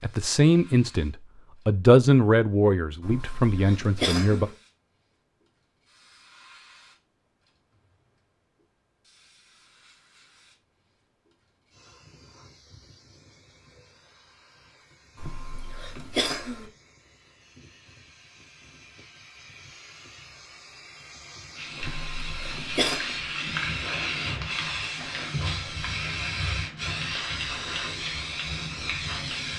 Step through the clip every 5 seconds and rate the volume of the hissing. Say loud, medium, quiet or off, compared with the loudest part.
quiet, quiet, quiet, quiet, loud, loud.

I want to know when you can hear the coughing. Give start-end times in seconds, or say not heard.
3.0-4.5, 15.2-16.7, 21.8-23.1.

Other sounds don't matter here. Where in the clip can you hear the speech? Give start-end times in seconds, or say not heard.
0.0-4.5.